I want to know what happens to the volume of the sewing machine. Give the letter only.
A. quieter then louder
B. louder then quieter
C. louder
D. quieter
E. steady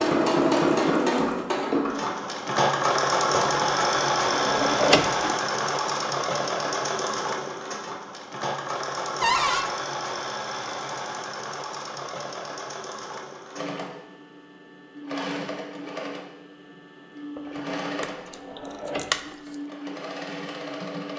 D.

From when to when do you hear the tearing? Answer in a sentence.
You can hear the tearing from 18.0 to 19.6 s.